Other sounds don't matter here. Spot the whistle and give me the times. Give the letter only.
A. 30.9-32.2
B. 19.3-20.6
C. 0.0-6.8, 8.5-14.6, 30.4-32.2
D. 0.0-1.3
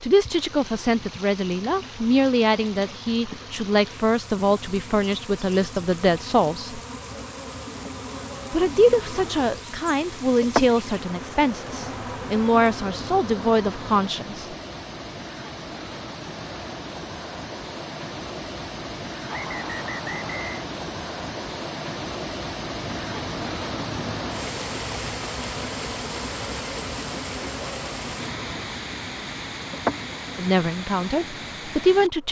B.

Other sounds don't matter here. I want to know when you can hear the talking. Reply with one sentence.
The talking can be heard from 0.0 to 6.8 s, from 8.5 to 14.6 s and from 30.4 to 32.2 s.